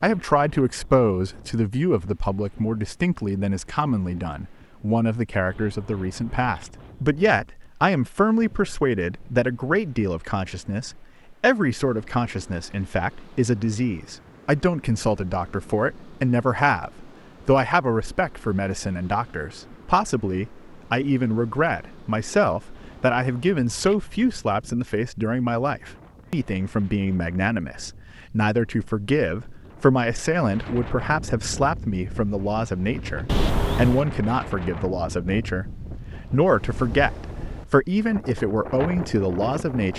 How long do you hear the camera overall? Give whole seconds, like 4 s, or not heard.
4 s.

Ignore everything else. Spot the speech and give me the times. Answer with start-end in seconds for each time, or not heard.
0.0-39.9.